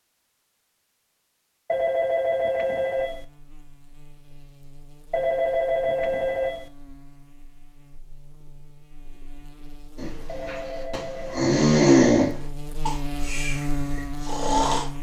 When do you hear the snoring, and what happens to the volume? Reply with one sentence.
The snoring can be heard from 9.9 to 14.8 s, getting louder then quieter.